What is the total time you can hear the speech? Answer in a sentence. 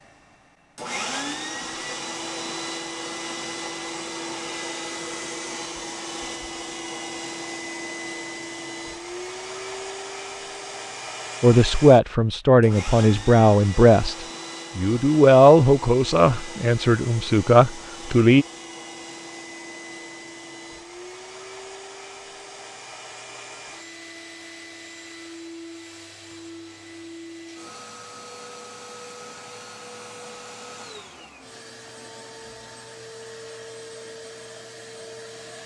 The speech can be heard for 7 seconds in total.